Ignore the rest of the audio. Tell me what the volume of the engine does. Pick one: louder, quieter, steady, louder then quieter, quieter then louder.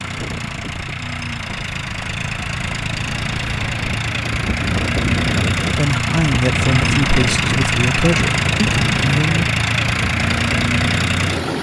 louder.